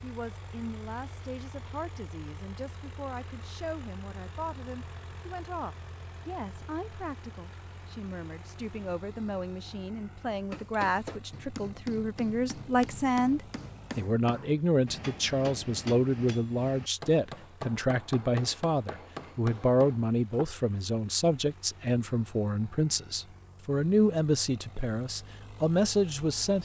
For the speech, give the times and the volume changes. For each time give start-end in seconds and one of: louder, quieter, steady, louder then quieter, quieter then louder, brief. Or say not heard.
0.0-26.6 louder.